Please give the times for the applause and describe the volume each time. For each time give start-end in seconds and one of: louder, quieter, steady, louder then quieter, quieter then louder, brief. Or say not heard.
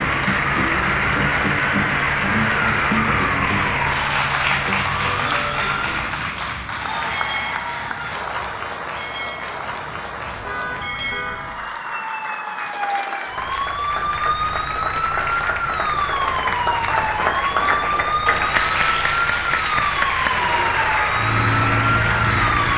0.0-22.7 quieter then louder.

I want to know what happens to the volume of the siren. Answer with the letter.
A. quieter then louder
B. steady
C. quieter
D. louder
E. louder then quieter
A.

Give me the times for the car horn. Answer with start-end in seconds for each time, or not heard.
10.3-11.8.